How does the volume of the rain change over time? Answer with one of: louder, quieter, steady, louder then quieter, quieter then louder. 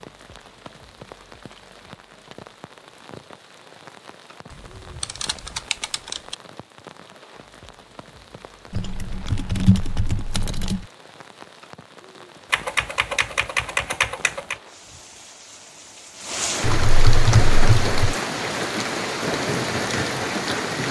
louder.